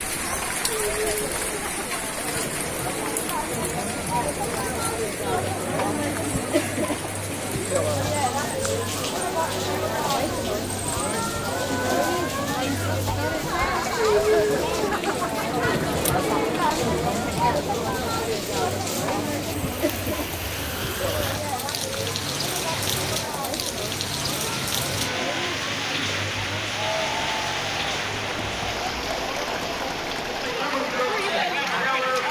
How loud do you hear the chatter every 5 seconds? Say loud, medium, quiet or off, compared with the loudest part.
medium, loud, loud, loud, medium, medium, loud.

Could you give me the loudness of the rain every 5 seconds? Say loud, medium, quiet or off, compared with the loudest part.
loud, medium, medium, medium, loud, loud, medium.